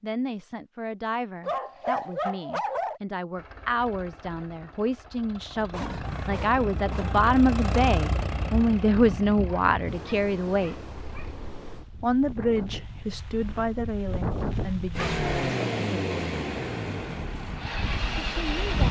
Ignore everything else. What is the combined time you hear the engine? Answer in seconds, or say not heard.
12 s.